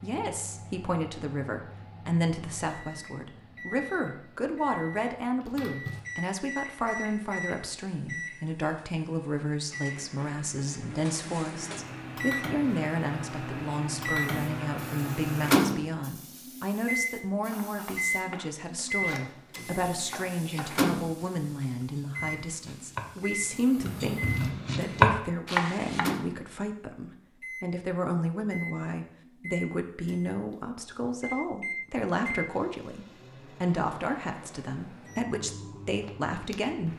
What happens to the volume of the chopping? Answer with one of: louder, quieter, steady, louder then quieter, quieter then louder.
louder.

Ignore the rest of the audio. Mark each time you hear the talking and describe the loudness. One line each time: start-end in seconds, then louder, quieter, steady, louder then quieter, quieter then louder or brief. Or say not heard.
0.0-36.9 steady.